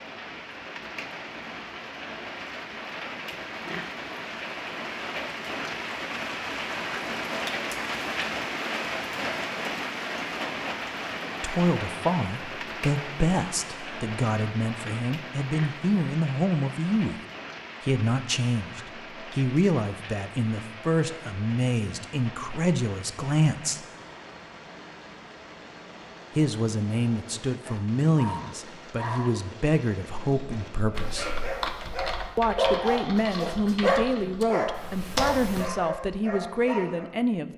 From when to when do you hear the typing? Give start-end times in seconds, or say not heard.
30.9-35.7.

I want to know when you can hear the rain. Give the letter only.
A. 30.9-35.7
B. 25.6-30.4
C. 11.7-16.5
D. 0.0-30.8
D.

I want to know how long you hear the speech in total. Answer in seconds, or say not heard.
22 s.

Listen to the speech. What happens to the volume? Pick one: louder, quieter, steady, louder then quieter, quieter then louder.
steady.